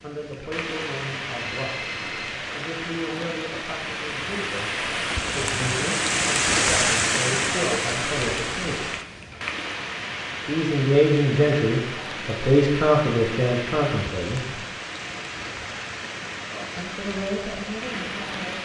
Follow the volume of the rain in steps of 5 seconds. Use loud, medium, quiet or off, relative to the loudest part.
medium, loud, medium, medium.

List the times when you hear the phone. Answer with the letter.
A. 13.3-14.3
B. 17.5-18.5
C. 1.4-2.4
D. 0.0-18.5
C.